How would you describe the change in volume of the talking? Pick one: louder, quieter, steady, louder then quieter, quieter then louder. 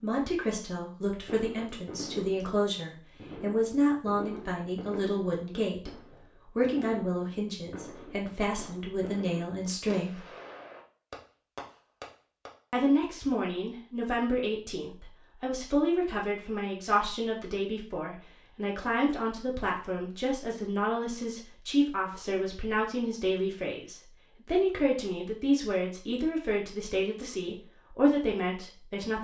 steady.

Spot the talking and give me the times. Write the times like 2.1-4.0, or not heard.
0.0-5.9, 6.5-10.2, 12.7-29.1.